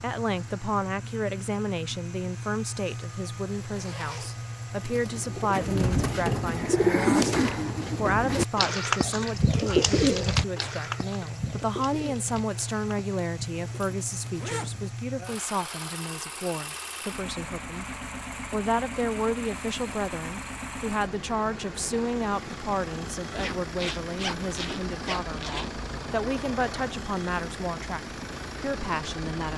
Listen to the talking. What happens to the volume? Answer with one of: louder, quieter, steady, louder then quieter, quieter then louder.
steady.